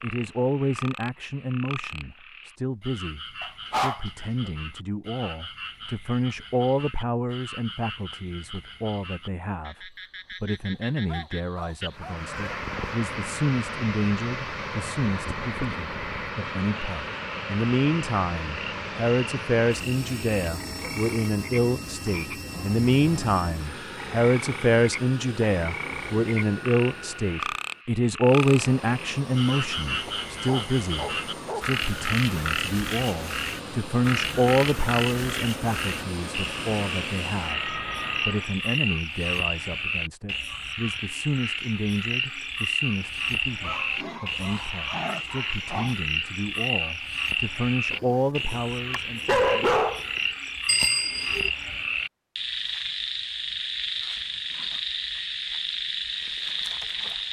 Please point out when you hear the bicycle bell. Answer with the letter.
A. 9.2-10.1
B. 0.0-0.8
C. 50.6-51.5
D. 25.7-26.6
C.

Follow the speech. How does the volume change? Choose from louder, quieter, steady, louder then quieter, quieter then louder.
louder then quieter.